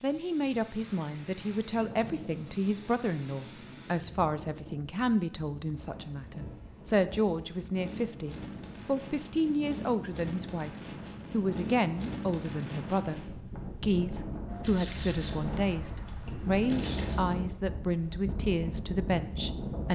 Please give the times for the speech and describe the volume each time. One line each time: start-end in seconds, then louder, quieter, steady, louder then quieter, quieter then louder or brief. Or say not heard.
0.0-19.9 steady.